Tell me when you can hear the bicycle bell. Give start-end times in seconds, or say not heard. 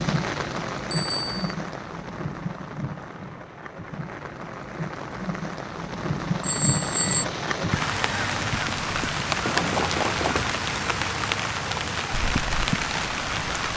0.9-1.6, 6.4-7.2, 9.4-10.6.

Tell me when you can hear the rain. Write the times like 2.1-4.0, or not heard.
0.0-13.7.